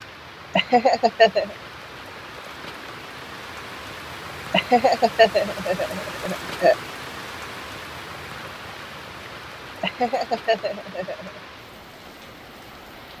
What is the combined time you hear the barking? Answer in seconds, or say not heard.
not heard.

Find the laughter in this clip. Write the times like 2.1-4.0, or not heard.
0.6-1.6, 4.5-6.8, 9.8-11.4.